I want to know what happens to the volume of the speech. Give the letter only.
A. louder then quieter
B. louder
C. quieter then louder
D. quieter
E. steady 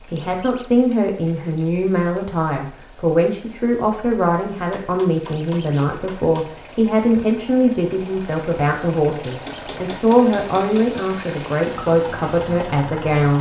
E.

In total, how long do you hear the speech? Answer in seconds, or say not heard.
13 s.